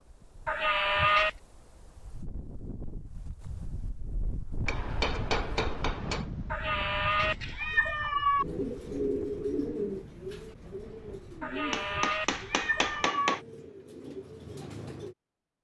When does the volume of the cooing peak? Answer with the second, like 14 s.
9 s.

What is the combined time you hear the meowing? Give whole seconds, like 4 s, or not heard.
5 s.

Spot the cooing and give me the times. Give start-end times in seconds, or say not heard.
8.3-15.2.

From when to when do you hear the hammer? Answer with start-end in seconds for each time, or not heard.
4.7-6.3, 11.7-13.4.